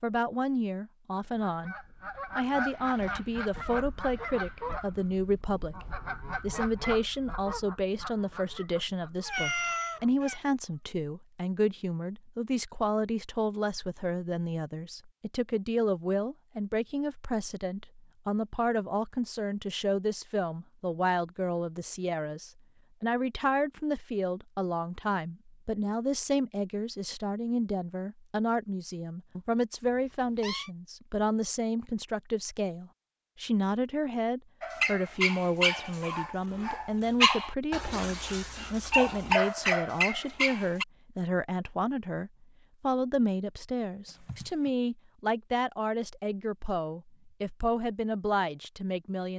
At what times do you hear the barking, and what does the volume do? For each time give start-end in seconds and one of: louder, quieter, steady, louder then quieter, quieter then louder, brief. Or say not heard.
34.6-40.9 quieter then louder.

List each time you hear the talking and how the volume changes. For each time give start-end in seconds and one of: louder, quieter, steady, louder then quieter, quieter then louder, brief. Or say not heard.
0.0-1.8 brief
2.4-49.3 steady.